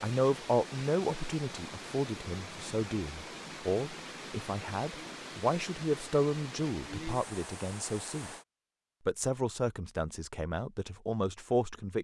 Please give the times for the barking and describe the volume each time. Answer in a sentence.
You can't hear the barking here.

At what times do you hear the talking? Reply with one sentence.
You can hear the talking from 0.0 to 8.3 s and from 9.1 to 11.9 s.